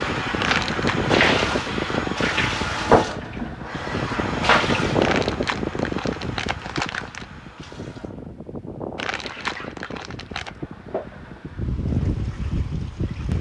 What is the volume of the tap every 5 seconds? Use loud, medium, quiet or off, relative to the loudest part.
loud, quiet, quiet.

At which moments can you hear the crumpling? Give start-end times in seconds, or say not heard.
0.4-1.0, 5.0-7.2, 8.9-10.5.